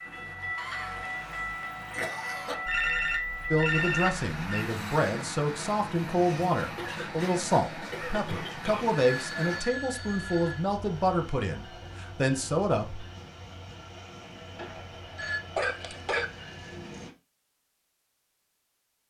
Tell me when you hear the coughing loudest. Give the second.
16 s.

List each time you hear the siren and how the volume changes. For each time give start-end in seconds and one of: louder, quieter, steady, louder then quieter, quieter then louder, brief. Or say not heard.
not heard.